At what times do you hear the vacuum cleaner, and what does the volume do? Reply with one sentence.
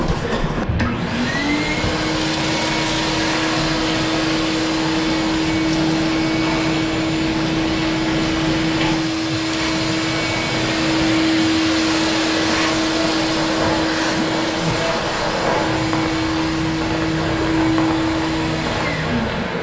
You can hear the vacuum cleaner from 0.0 to 19.5 s, at a steady volume.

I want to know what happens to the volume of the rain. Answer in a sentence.
The loudness of the rain stays about the same.